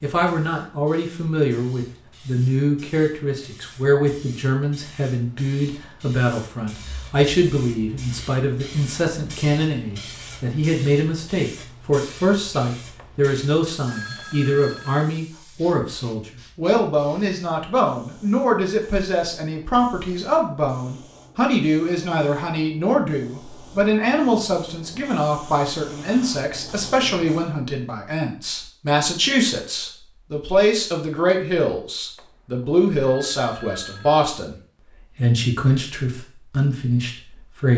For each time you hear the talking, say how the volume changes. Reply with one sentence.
The talking can be heard from 0.0 to 34.5 s, at a steady volume; and briefly from 35.1 to 37.7 s.